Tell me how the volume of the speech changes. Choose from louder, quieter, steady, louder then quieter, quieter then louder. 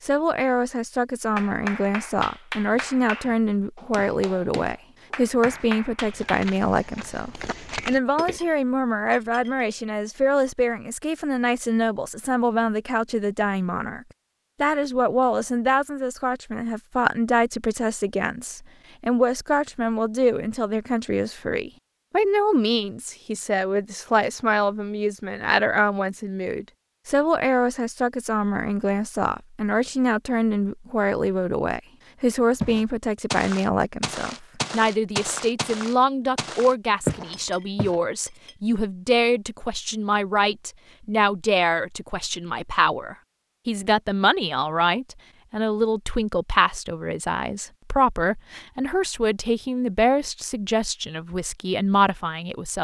steady.